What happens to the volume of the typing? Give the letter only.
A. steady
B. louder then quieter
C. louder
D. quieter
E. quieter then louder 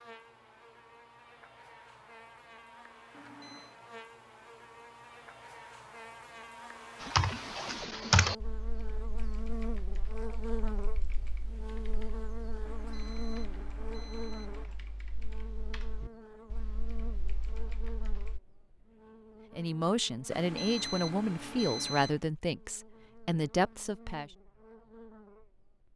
D.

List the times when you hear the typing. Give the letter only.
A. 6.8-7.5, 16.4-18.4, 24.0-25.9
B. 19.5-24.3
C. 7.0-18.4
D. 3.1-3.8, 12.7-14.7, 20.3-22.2
C.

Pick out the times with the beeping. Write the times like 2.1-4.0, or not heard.
3.1-3.8, 12.7-14.7, 20.3-22.2.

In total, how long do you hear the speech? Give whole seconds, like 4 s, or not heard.
5 s.